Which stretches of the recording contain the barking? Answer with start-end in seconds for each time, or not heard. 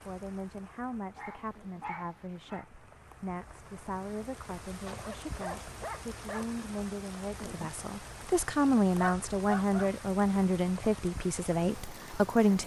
1.1-2.6, 4.8-6.6, 8.9-9.9.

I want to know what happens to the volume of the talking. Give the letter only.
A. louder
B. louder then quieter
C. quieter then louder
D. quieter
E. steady
A.